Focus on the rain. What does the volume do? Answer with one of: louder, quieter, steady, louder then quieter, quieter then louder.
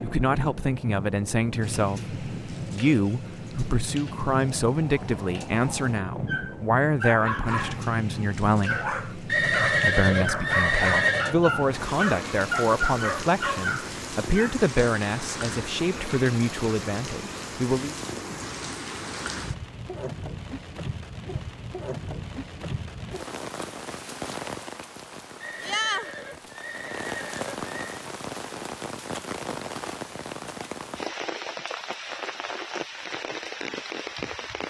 steady.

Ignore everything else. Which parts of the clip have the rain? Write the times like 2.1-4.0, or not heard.
0.0-34.6.